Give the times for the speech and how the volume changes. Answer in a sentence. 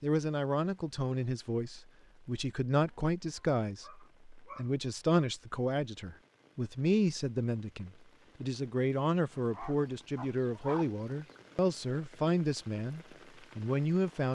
You can hear the speech from 0.0 to 14.2 s, at a steady volume.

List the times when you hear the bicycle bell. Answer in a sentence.
You can't hear the bicycle bell here.